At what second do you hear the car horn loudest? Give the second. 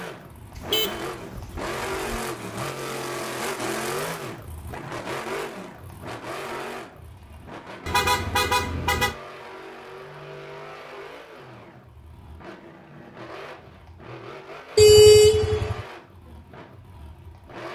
15 s.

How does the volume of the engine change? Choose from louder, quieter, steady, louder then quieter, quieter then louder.
quieter.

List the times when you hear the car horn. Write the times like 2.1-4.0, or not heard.
0.6-2.2, 7.8-9.2, 14.8-15.8.